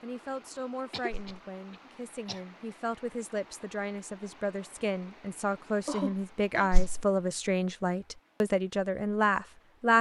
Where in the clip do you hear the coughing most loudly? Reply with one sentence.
The loudest moment of the coughing is at 6 seconds.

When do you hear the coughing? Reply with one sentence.
The coughing can be heard from 0.9 to 2.4 s and from 5.8 to 6.7 s.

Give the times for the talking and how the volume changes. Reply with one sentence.
The talking can be heard from 0.0 to 9.9 s, getting louder.